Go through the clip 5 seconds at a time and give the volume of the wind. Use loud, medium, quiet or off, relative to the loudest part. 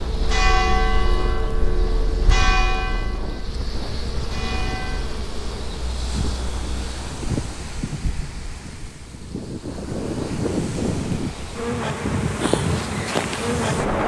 medium, medium, loud.